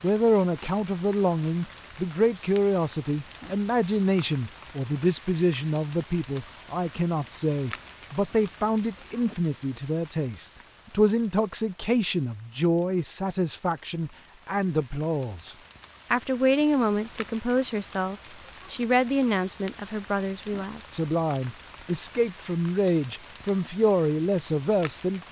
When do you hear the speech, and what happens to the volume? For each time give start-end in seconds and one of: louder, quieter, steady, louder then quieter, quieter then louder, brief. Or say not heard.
0.0-25.2 steady.